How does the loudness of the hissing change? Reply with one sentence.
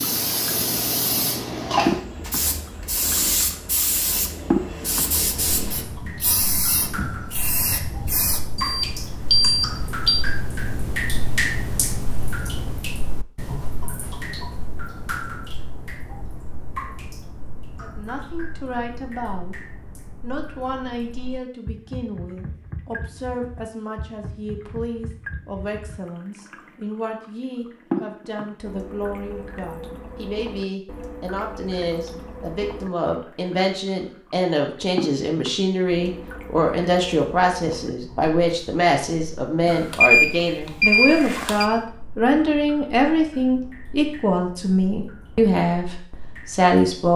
The volume of the hissing goes down.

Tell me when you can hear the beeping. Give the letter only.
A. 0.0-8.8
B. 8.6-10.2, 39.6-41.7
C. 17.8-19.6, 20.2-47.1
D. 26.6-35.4
B.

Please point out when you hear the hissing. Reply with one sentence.
You can hear the hissing from 0.0 to 8.8 s.